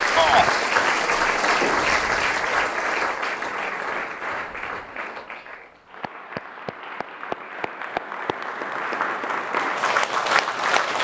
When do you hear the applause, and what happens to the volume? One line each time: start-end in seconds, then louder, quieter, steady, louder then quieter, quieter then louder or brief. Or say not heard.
0.0-10.9 quieter then louder.